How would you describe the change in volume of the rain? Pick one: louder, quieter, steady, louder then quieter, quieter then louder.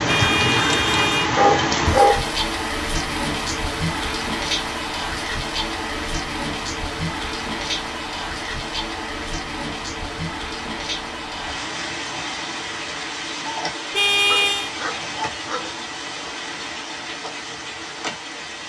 quieter.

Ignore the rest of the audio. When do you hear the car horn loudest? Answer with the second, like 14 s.
14 s.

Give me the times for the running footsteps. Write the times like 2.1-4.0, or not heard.
not heard.